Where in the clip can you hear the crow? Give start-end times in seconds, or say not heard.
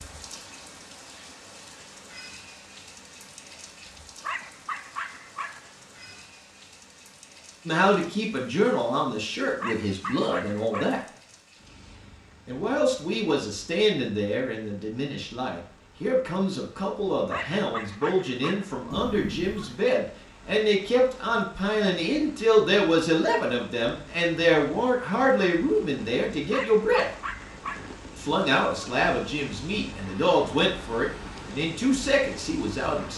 not heard.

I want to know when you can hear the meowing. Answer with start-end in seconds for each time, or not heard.
18.9-19.6.